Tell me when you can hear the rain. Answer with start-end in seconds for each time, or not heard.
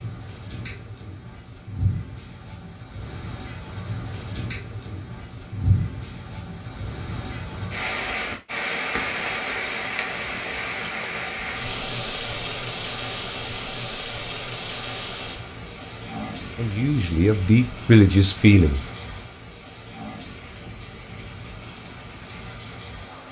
0.0-23.2.